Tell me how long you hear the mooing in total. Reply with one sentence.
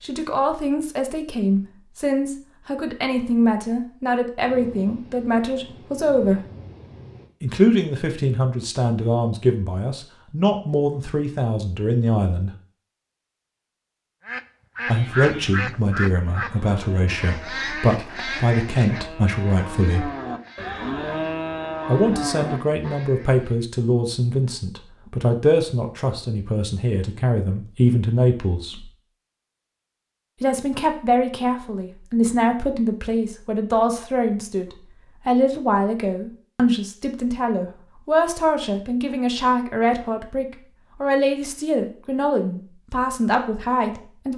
You can hear the mooing for 8 seconds altogether.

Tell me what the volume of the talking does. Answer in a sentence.
The loudness of the talking stays about the same.